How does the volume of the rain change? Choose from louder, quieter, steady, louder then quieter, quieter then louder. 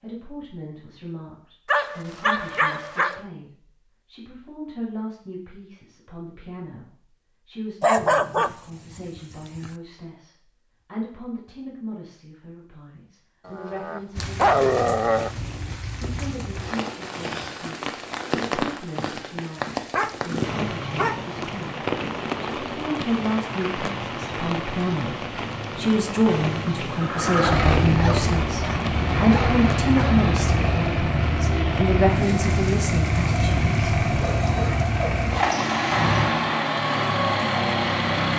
quieter.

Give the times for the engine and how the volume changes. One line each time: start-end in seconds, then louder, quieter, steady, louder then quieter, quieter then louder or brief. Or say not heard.
26.9-38.3 steady.